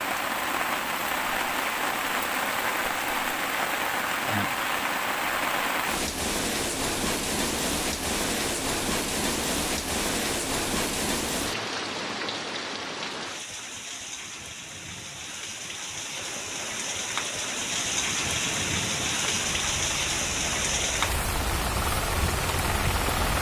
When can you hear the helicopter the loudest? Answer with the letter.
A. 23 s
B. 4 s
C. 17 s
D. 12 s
A.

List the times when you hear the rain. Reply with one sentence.
The rain can be heard from 0.0 to 23.3 s.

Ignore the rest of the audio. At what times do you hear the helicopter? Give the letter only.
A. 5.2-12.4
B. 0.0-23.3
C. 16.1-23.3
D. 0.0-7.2
C.